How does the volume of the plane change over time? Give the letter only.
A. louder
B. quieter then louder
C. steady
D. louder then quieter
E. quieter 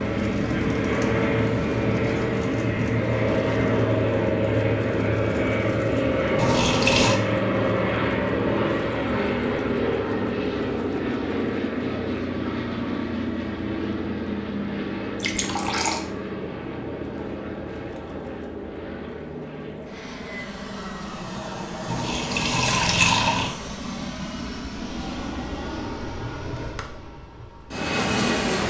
E.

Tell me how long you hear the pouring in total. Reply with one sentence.
The pouring can be heard for 3 seconds in total.